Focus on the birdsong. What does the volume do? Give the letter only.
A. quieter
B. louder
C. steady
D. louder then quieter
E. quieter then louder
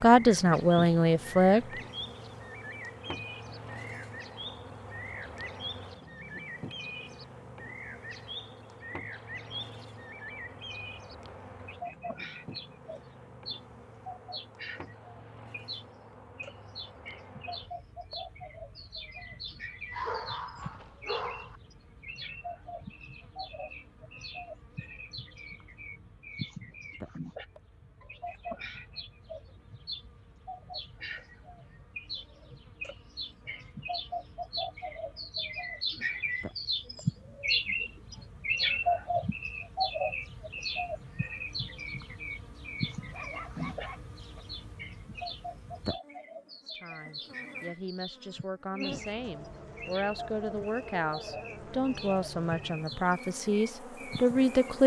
D.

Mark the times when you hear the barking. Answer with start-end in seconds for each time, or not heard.
19.9-21.6, 43.1-44.5.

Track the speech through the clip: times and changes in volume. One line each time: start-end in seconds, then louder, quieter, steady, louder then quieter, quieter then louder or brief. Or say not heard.
0.0-1.6 brief
46.6-54.8 louder.